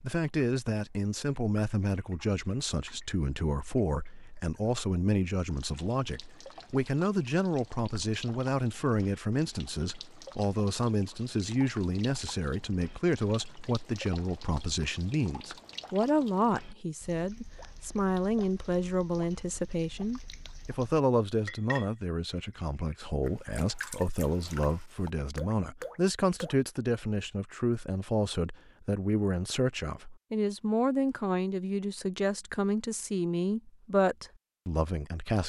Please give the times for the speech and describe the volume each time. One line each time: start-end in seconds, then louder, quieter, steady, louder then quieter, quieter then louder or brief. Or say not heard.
0.0-35.4 steady.